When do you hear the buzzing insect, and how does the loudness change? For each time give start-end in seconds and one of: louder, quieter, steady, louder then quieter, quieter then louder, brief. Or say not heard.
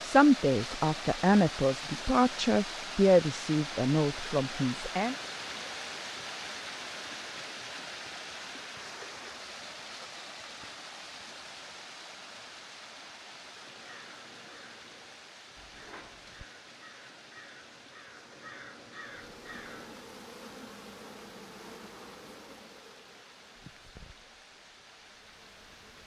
19.1-26.0 quieter.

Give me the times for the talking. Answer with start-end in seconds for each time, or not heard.
0.0-5.2.